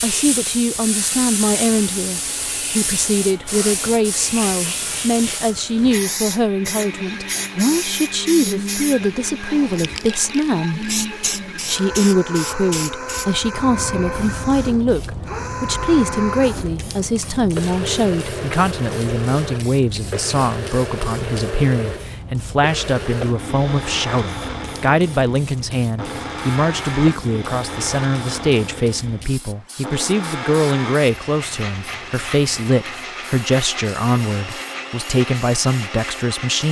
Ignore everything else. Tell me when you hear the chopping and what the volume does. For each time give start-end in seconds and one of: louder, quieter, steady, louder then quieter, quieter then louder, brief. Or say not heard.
not heard.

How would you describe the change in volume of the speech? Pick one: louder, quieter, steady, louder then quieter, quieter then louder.
steady.